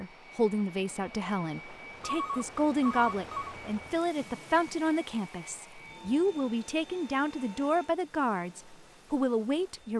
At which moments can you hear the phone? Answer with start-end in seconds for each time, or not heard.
2.0-3.5.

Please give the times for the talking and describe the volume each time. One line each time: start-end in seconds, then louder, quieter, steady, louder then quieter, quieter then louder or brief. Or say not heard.
0.0-9.9 steady.